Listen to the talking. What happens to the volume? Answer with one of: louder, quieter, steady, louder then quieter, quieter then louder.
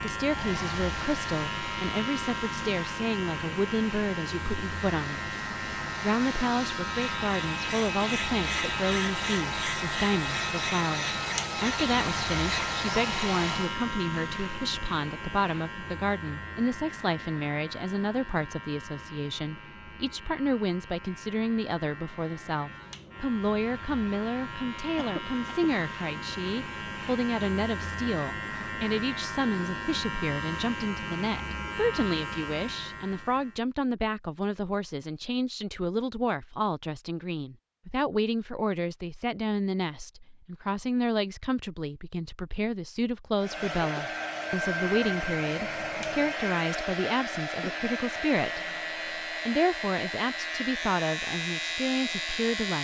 steady.